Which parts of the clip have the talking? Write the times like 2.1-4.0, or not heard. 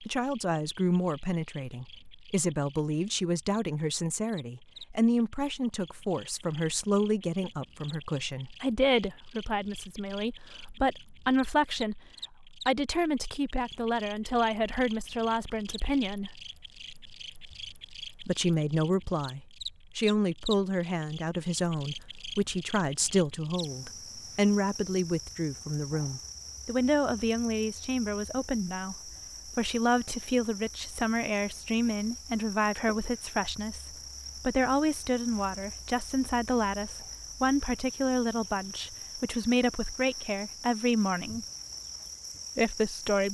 0.1-12.0, 12.7-16.3, 18.2-41.5, 42.5-43.2.